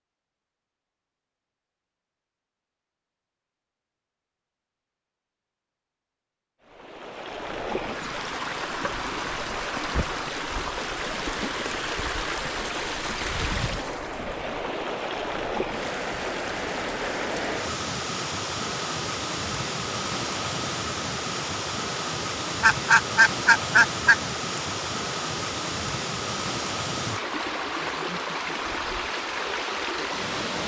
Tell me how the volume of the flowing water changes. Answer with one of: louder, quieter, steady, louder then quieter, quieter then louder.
steady.